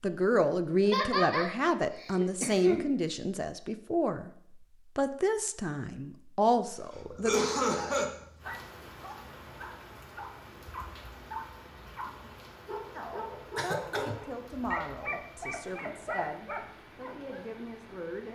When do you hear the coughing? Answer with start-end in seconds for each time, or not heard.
0.8-2.9, 7.1-8.1, 13.6-14.2.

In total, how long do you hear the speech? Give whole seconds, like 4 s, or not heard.
12 s.